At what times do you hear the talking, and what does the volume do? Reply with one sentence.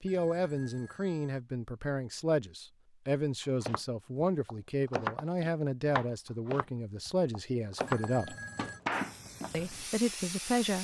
You can hear the talking from 0.0 to 8.3 s, at a steady volume; and briefly from 9.5 to 10.8 s.